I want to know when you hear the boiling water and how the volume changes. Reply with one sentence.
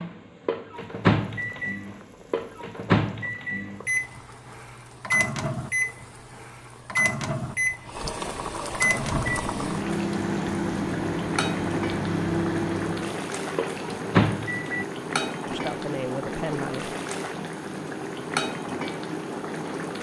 You can hear the boiling water from 0.0 to 19.9 s, getting louder.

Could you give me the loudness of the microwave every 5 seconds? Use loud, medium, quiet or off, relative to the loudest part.
loud, loud, loud, off.